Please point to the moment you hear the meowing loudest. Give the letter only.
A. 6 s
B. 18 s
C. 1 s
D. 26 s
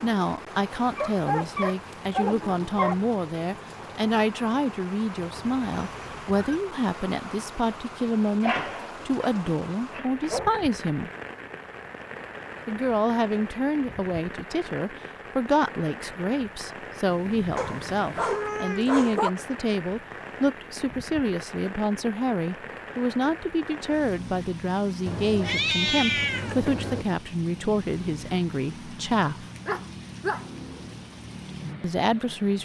D.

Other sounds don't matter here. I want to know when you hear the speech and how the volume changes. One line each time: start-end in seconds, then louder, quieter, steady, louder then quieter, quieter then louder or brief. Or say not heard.
0.0-11.1 steady
12.7-29.4 steady
31.8-32.5 brief.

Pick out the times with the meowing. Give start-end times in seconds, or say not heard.
5.2-6.4, 17.1-18.9, 25.1-27.1.